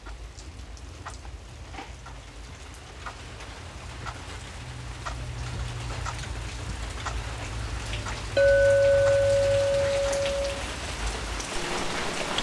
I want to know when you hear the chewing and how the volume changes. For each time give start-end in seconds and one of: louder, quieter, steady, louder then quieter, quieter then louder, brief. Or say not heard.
not heard.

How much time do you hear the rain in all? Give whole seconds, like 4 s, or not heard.
12 s.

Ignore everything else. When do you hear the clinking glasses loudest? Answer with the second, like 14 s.
9 s.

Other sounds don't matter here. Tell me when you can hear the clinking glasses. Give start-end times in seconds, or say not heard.
8.3-10.6.